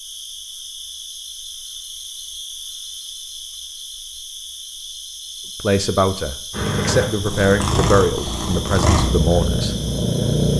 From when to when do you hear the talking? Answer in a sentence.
The talking can be heard from 5.5 to 9.8 s.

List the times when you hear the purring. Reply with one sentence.
You can hear the purring from 6.5 to 10.5 s.